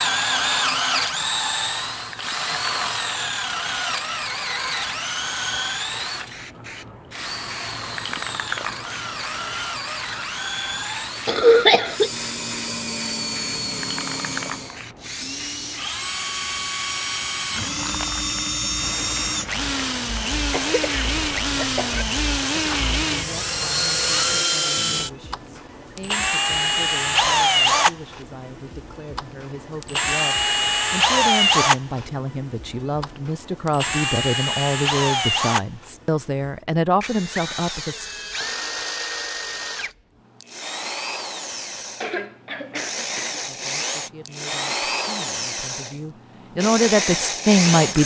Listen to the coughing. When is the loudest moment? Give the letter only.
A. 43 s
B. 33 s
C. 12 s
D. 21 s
C.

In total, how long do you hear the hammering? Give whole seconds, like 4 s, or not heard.
not heard.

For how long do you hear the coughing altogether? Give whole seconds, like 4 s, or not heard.
4 s.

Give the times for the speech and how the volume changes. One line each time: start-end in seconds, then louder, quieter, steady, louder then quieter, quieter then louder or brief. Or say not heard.
21.8-38.0 louder
43.5-48.0 louder.